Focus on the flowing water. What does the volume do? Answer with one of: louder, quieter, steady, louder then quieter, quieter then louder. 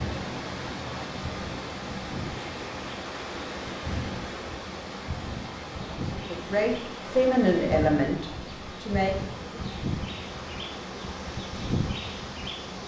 quieter.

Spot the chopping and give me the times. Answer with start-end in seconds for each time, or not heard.
not heard.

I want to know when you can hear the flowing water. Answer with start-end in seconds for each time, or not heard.
0.0-12.8.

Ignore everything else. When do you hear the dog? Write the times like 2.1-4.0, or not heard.
not heard.